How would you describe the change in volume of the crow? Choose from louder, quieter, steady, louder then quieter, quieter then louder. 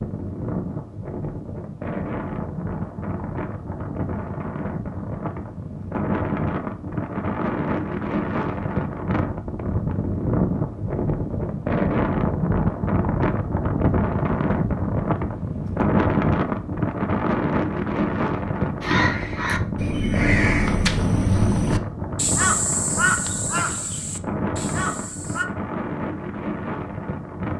quieter.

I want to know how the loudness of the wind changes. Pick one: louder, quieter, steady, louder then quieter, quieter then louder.
louder then quieter.